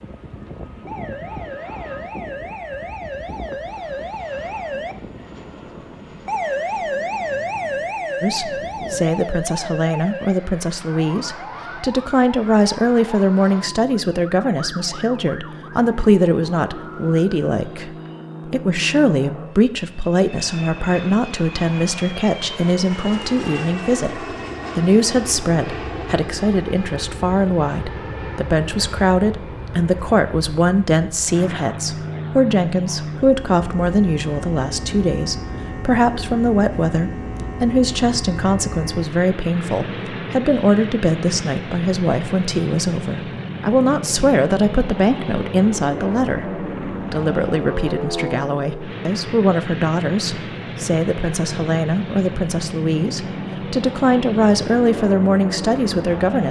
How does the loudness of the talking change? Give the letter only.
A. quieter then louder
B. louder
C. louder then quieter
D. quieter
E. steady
E.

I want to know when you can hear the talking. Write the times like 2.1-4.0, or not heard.
8.2-56.4.